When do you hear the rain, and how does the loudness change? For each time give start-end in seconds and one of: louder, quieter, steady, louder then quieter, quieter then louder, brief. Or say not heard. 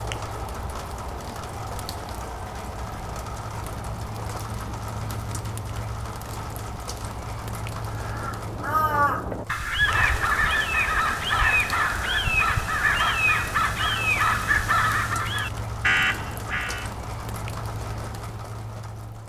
0.0-19.2 steady.